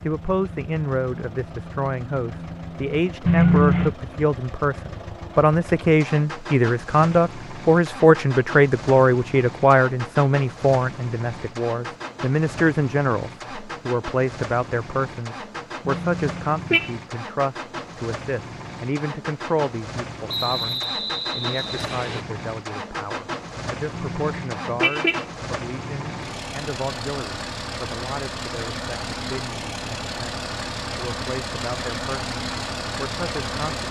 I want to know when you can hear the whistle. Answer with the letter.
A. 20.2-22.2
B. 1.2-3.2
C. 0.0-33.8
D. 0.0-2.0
A.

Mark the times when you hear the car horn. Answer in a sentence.
You can hear the car horn from 3.2 to 4.0 s, from 15.8 to 16.9 s and from 23.9 to 25.2 s.